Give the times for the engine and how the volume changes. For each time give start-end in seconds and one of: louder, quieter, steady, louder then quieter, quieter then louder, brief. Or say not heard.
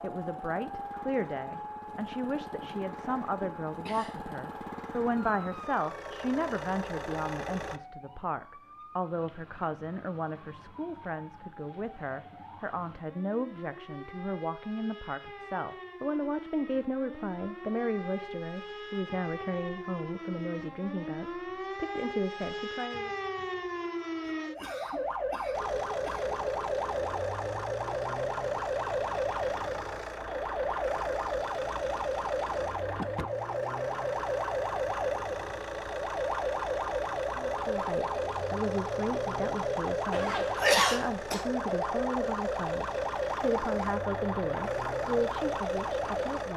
0.0-7.8 louder
25.5-46.5 steady.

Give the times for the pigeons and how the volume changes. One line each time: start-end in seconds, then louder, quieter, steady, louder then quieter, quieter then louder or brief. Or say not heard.
not heard.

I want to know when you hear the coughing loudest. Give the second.
41 s.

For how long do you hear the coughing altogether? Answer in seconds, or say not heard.
5 s.